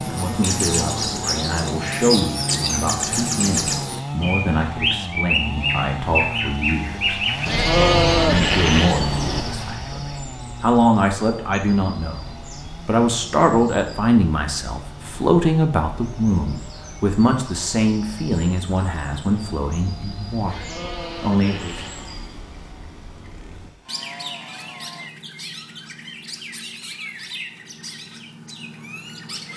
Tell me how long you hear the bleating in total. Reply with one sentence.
The bleating can be heard for 4 seconds in total.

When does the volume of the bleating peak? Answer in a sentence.
The volume of the bleating peaks at 8 seconds.